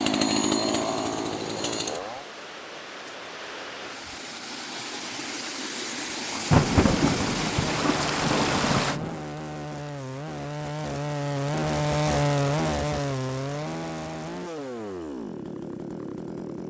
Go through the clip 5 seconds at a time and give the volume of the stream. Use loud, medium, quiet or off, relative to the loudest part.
medium, loud, off, off.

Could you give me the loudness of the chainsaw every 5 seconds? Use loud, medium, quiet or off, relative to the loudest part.
loud, medium, loud, medium.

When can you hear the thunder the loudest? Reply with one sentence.
The loudest moment of the thunder is at 7 seconds.